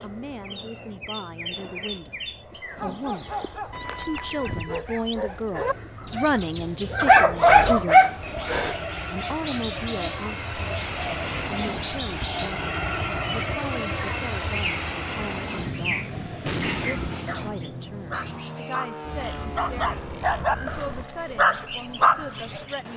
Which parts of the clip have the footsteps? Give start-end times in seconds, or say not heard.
not heard.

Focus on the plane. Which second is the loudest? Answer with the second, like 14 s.
13 s.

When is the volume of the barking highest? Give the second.
8 s.